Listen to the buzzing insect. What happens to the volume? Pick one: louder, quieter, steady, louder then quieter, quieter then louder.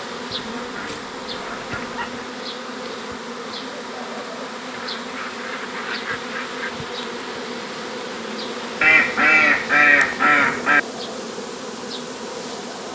steady.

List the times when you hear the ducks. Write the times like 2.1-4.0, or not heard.
0.3-2.3, 4.7-6.8, 8.8-10.8.